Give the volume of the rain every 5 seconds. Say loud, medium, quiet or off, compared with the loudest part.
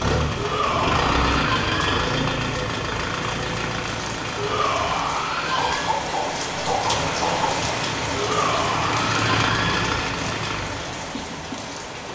medium, loud, medium.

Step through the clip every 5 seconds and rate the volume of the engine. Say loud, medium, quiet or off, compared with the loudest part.
loud, loud, medium.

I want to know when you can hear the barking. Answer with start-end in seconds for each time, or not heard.
5.5-7.5.